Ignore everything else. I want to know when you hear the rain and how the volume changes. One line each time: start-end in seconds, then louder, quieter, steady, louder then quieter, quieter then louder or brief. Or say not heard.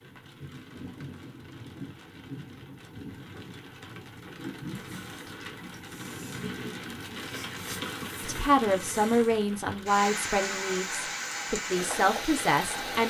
0.0-13.0 louder.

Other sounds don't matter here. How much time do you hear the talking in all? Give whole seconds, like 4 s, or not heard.
5 s.